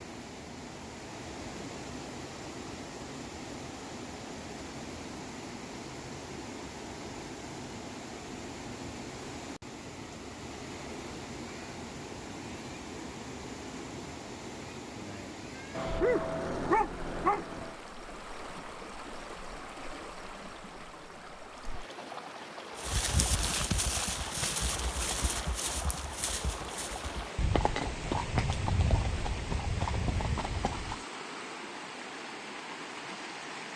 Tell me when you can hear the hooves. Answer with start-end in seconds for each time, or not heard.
22.8-31.0.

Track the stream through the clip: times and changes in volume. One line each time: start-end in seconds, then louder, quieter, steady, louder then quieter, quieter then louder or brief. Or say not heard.
0.0-33.7 steady.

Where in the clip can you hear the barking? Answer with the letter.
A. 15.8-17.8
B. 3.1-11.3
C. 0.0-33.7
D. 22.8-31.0
A.